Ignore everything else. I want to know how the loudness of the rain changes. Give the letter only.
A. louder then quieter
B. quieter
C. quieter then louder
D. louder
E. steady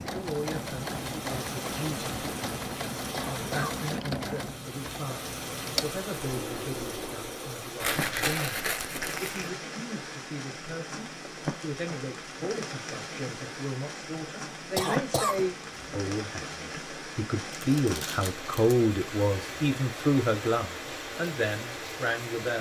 E.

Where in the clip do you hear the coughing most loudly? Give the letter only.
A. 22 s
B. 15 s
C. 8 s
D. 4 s
B.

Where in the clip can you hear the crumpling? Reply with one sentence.
The crumpling can be heard from 7.8 to 9.5 s and from 17.5 to 18.8 s.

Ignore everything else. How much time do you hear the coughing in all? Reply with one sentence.
You can hear the coughing for 2 seconds altogether.